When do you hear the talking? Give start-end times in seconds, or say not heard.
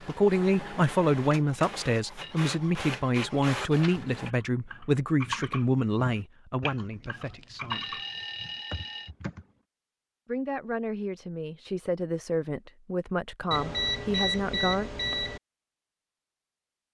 0.1-8.0, 10.2-14.9.